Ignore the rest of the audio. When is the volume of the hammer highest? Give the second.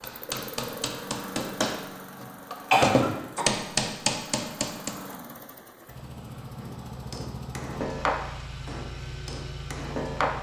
3 s.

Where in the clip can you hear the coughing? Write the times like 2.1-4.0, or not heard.
2.7-3.5.